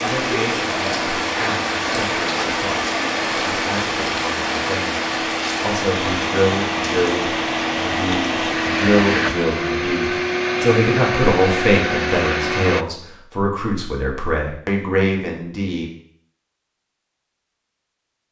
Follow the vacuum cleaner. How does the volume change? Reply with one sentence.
The volume of the vacuum cleaner goes up.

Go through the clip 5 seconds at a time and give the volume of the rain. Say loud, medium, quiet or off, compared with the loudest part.
loud, loud, off, off.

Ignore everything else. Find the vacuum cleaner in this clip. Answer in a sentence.
You can hear the vacuum cleaner from 0.0 to 12.8 s.